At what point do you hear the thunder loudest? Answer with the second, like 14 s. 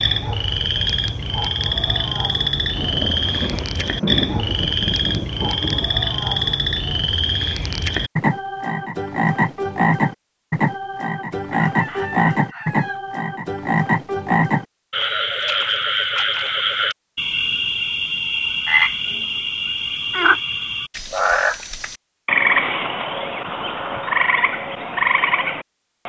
4 s.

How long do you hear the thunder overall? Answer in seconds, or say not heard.
3 s.